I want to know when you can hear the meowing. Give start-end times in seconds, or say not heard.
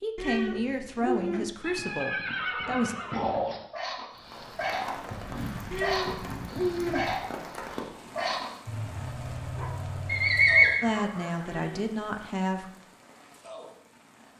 0.1-1.5, 5.7-7.2, 11.4-11.9.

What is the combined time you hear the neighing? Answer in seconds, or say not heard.
3 s.